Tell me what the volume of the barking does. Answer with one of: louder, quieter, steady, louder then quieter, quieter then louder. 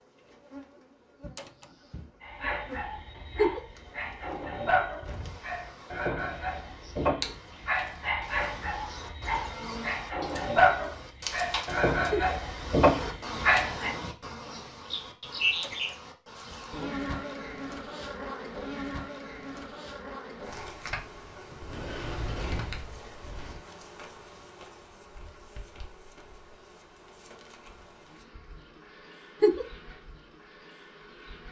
louder.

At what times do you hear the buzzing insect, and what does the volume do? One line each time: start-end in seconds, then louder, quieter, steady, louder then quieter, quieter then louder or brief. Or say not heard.
0.0-31.4 louder then quieter.